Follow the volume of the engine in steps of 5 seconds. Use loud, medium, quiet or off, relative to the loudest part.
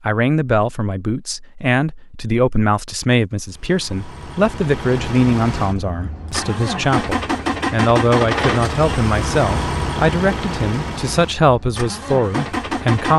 medium, loud, loud.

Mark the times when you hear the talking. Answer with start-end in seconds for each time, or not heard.
0.1-13.1.